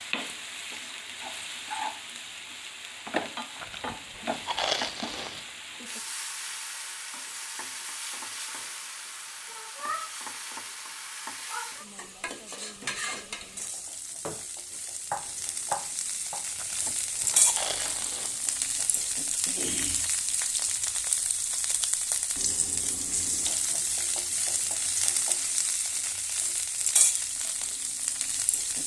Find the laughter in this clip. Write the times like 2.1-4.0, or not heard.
not heard.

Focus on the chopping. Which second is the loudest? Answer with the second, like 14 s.
16 s.